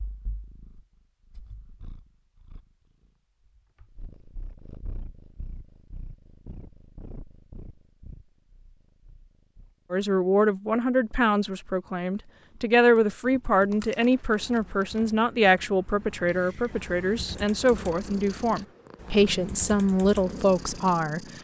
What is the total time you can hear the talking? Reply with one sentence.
You can hear the talking for 11 seconds altogether.